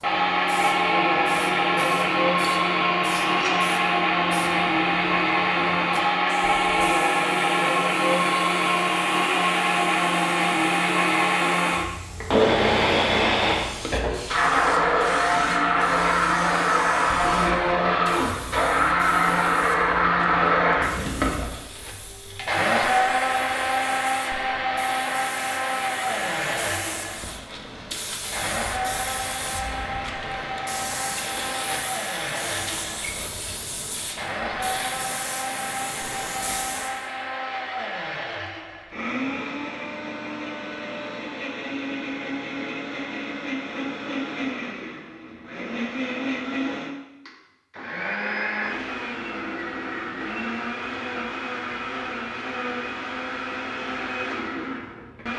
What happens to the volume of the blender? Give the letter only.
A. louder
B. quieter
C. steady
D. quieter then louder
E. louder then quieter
B.